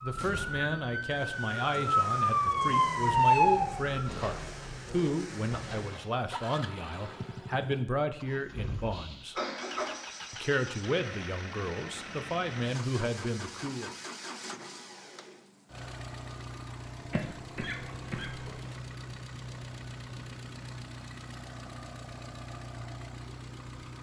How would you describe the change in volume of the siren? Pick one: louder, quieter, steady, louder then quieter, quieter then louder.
louder.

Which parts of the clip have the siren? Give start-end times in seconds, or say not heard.
0.0-4.0.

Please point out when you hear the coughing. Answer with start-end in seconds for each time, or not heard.
4.0-6.2, 8.9-10.0, 17.1-18.8.